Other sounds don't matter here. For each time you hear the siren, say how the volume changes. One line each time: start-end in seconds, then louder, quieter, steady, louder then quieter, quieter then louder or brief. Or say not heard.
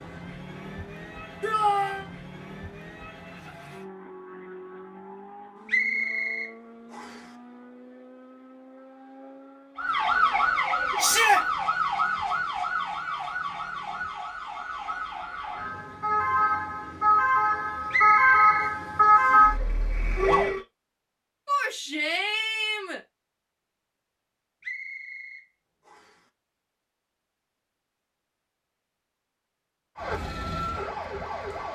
9.8-20.6 quieter then louder
29.9-31.6 brief.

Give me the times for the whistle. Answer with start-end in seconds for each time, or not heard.
5.7-7.2, 17.9-19.5, 24.6-26.2.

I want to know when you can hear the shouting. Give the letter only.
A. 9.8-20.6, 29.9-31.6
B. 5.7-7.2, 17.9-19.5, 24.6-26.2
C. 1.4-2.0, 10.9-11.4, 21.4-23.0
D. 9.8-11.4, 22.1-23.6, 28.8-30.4
C.